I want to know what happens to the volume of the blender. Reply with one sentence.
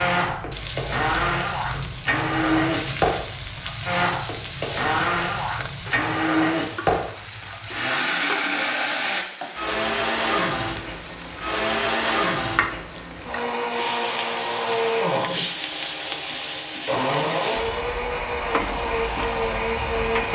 The loudness of the blender stays about the same.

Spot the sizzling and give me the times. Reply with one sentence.
The sizzling can be heard from 0.0 to 20.3 s.